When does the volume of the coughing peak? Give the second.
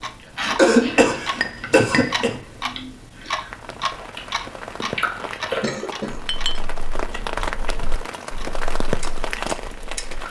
1 s.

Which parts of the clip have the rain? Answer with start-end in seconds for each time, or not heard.
3.5-10.2.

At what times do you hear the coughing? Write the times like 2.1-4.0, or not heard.
0.6-2.4, 5.6-6.7.